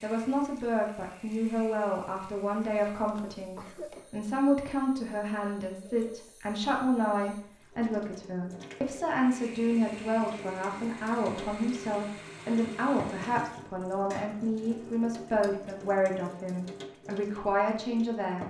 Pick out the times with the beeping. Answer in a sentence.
The beeping can't be heard in this clip.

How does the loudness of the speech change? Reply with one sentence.
The volume of the speech stays about the same.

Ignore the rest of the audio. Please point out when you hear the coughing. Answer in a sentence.
You can hear the coughing from 3.5 to 4.2 s.